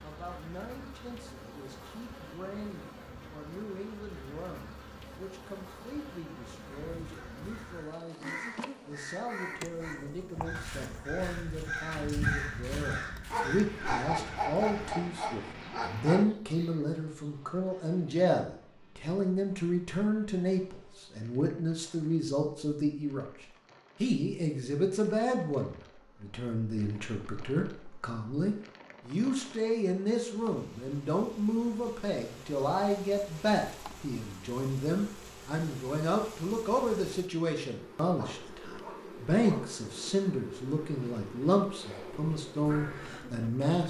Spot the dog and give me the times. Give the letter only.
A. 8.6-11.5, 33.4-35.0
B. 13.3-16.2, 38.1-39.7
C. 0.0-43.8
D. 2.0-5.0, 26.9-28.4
B.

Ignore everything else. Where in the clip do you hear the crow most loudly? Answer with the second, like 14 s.
12 s.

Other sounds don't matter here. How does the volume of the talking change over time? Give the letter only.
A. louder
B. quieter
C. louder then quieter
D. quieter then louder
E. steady
A.